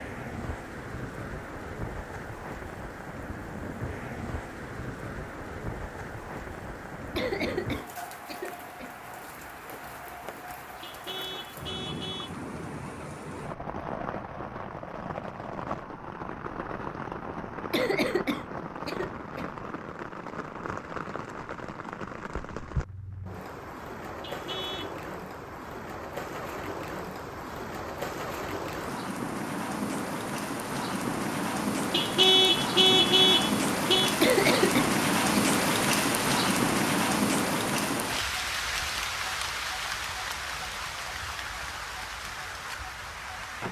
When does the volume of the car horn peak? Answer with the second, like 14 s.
32 s.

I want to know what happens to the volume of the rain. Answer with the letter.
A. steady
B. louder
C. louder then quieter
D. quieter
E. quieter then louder
B.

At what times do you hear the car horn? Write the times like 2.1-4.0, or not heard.
10.8-12.3, 24.2-24.9, 31.9-34.1.